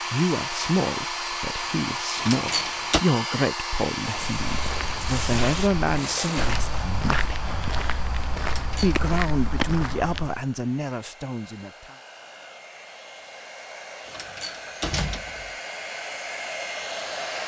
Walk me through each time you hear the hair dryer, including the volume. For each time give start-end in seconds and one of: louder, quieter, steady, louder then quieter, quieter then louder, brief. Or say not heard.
0.0-17.4 quieter then louder.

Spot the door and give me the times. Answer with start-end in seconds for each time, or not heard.
2.1-3.0, 8.4-8.9, 14.1-15.6.